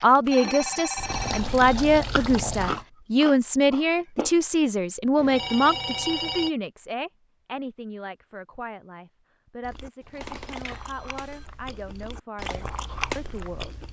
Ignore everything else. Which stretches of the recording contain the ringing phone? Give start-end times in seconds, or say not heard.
0.2-1.5, 5.2-6.5, 10.6-11.4.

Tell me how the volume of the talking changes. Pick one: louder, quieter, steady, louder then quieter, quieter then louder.
quieter.